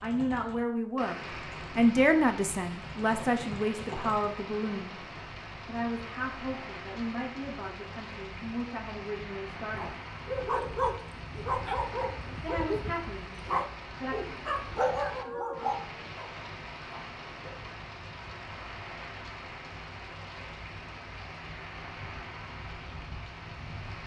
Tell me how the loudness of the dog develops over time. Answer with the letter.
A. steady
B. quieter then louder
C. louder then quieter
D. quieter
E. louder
A.